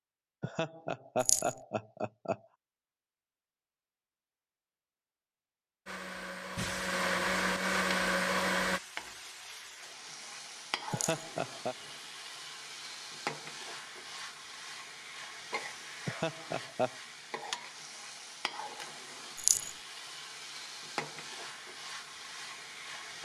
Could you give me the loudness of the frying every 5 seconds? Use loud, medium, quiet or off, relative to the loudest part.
off, loud, loud, loud, loud.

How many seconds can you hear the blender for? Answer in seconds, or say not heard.
3 s.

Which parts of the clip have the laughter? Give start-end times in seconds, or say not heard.
0.4-2.4, 10.9-11.8, 16.1-16.9.